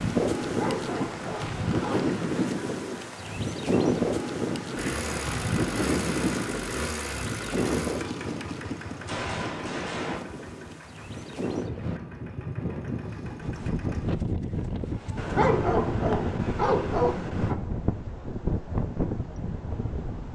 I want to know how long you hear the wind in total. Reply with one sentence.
You can hear the wind for 20 seconds altogether.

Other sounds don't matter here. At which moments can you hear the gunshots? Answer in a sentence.
The gunshots can be heard from 9.1 to 10.2 s.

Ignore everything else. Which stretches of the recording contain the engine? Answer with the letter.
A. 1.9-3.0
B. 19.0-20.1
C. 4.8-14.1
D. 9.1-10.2
C.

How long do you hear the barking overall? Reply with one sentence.
You can hear the barking for 4 seconds altogether.